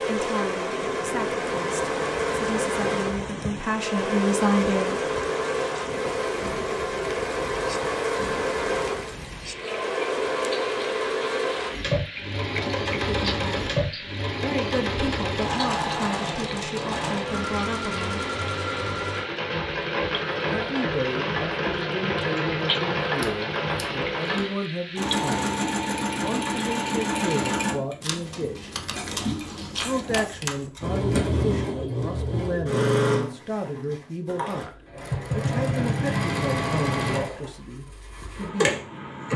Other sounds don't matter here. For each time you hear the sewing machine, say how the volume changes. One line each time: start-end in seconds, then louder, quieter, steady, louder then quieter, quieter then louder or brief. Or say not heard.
0.0-39.3 steady.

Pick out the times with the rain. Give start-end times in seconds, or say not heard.
0.0-27.6.